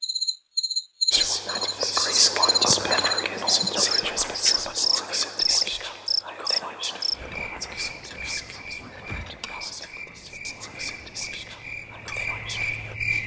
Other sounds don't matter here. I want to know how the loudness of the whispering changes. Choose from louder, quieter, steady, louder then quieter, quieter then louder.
quieter.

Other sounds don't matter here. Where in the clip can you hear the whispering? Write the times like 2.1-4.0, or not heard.
1.1-12.9.